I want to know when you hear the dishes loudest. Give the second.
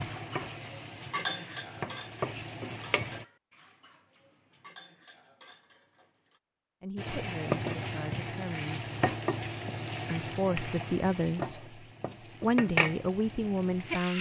1 s.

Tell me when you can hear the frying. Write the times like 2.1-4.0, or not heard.
0.0-3.2, 7.0-14.1.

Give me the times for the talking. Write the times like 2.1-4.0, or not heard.
6.8-8.9, 10.1-11.7, 12.4-14.1.